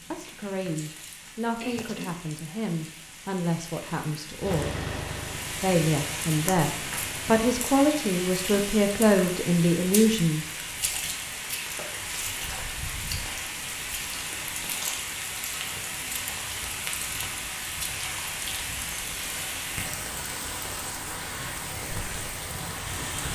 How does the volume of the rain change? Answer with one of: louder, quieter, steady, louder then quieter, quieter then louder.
louder.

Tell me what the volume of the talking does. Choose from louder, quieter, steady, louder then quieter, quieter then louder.
louder.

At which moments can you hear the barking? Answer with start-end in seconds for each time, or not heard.
not heard.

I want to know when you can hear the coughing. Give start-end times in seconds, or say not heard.
1.6-2.2.